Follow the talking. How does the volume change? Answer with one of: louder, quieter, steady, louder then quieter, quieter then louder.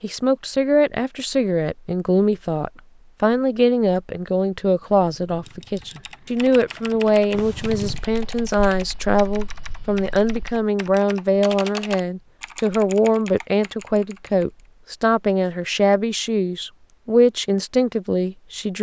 steady.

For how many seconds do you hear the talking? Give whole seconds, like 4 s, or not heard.
19 s.